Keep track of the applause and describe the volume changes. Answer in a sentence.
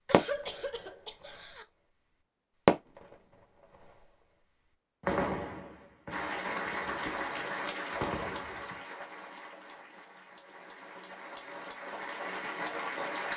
The volume of the applause goes down, then up.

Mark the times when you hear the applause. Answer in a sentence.
You can hear the applause from 6.1 to 13.3 s.